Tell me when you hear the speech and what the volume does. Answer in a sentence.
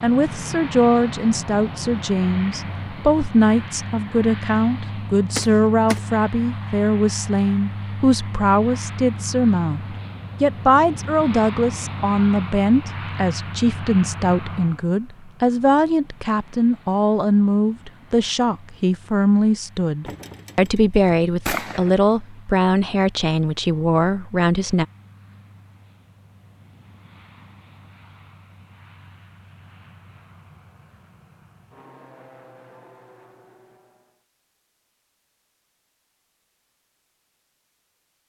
The speech can be heard from 0.0 to 24.9 s, at a steady volume.